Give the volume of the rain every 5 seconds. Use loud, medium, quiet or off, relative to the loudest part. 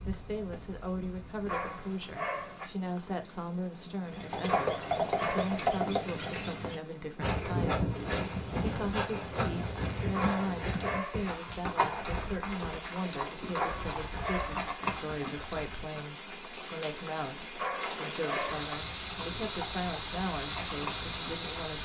quiet, quiet, medium, loud, loud.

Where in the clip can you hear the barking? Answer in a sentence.
You can hear the barking from 1.4 to 2.7 s, from 4.5 to 5.7 s, from 10.1 to 11.3 s, from 13.5 to 14.8 s and from 17.6 to 18.8 s.